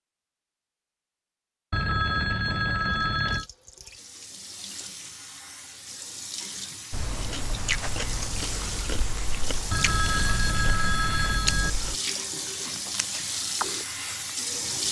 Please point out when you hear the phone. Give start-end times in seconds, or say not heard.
1.7-3.5, 9.7-11.7.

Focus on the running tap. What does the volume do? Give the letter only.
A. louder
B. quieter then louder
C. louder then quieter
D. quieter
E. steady
A.